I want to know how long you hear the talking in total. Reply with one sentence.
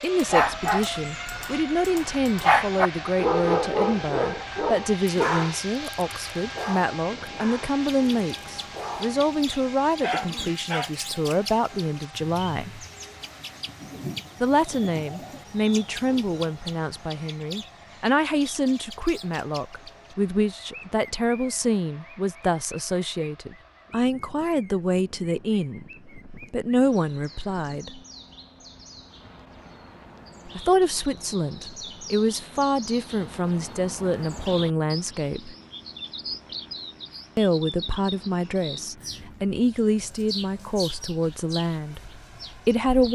You can hear the talking for 37 seconds altogether.